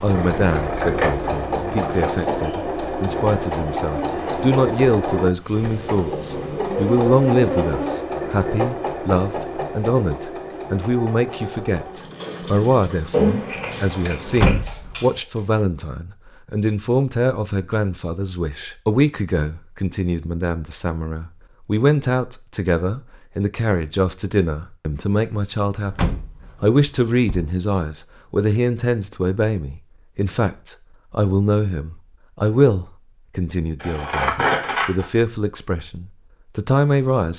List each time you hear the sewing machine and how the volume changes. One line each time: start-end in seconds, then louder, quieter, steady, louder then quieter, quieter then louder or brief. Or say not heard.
0.0-15.6 quieter.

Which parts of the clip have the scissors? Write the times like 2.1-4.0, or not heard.
0.1-2.1, 13.1-14.7, 33.8-35.0.